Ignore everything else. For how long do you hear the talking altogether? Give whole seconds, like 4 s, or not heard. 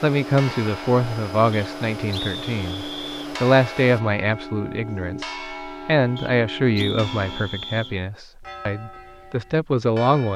10 s.